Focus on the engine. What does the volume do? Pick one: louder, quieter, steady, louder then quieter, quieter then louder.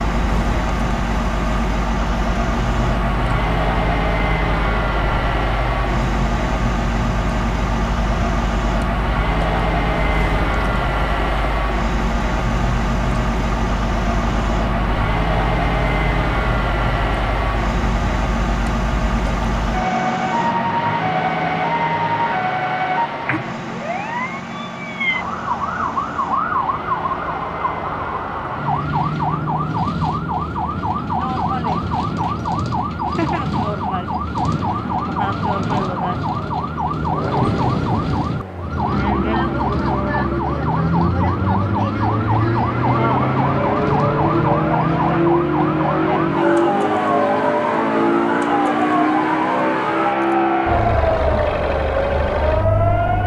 quieter then louder.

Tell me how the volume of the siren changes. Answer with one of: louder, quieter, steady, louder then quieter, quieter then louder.
louder.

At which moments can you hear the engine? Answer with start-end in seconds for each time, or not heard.
0.0-53.2.